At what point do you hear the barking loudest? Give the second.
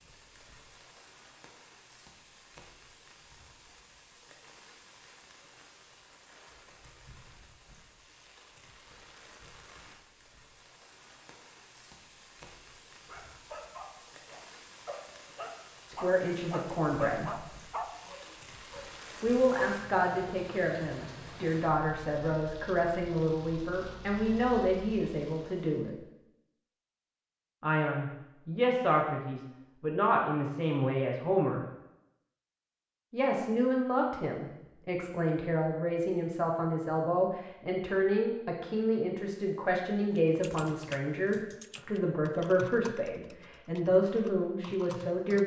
18 s.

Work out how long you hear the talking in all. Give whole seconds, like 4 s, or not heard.
25 s.